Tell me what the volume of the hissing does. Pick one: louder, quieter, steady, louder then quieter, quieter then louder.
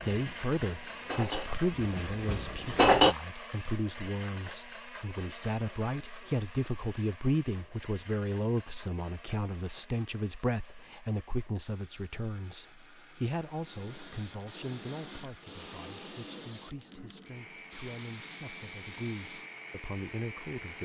steady.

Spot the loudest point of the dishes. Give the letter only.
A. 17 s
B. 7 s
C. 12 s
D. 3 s
D.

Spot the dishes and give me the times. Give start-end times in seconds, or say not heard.
0.1-3.1.